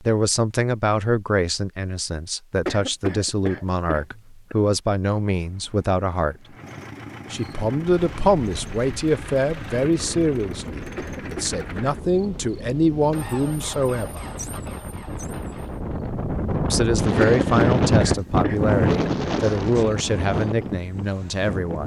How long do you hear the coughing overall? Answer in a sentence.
You can hear the coughing for 5 seconds altogether.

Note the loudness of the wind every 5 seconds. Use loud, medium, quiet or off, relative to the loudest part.
off, quiet, quiet, loud, medium.